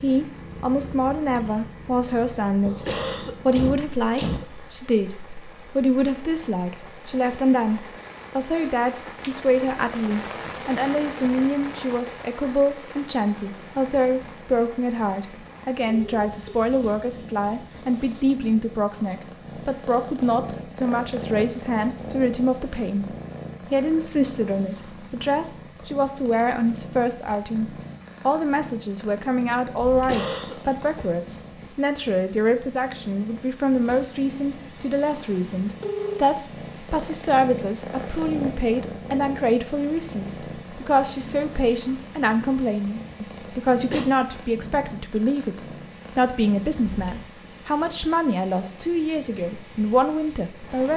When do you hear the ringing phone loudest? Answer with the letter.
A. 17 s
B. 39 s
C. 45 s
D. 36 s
D.